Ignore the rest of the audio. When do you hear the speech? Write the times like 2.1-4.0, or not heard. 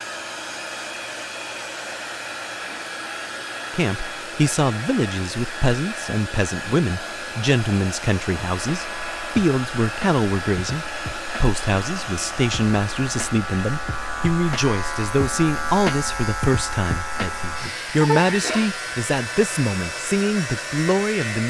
3.7-21.4.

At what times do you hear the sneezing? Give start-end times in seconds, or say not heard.
17.1-18.8.